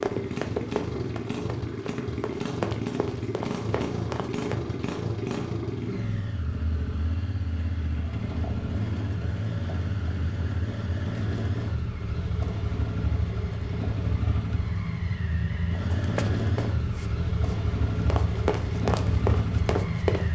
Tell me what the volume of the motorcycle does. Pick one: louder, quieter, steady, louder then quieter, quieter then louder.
steady.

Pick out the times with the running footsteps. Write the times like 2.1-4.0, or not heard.
0.0-4.5, 15.9-20.3.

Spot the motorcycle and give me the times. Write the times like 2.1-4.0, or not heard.
0.0-20.3.